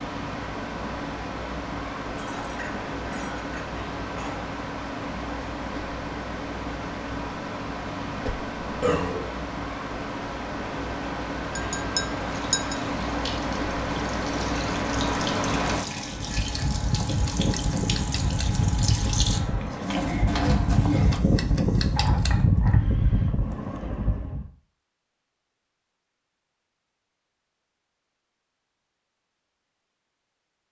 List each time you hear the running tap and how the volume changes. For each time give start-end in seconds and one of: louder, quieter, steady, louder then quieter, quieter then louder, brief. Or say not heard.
12.2-21.2 louder.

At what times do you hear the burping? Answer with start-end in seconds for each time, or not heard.
8.1-9.2.